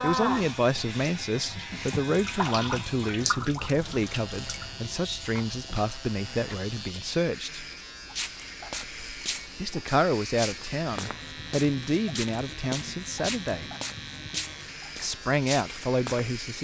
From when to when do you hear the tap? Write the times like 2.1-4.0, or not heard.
0.0-7.0.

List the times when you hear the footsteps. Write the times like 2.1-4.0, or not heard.
8.1-16.3.